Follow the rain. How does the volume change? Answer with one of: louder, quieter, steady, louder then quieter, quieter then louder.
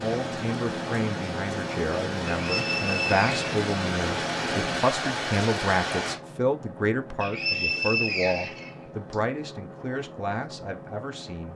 louder.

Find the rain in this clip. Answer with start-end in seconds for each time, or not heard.
0.0-6.2.